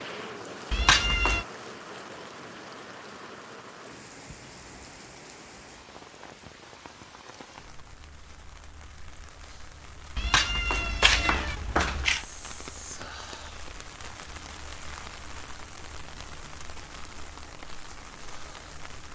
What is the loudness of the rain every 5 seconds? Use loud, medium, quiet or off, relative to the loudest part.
loud, medium, loud, loud.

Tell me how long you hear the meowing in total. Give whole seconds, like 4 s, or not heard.
3 s.